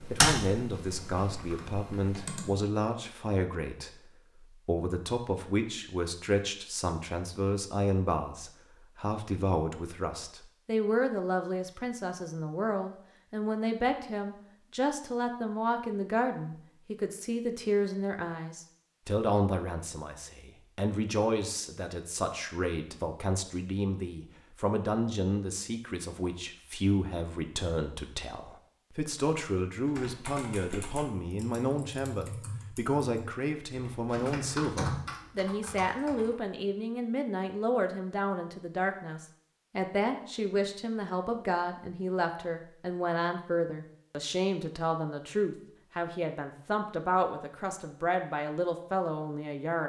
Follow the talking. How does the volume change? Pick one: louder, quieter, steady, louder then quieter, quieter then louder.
steady.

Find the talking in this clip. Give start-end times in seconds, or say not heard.
0.1-49.8.